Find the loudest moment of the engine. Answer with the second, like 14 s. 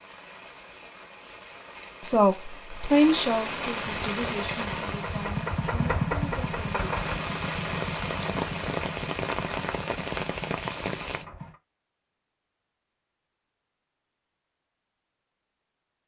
6 s.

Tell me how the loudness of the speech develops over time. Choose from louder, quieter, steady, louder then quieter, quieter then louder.
quieter.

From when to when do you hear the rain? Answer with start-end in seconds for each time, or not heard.
0.0-11.2.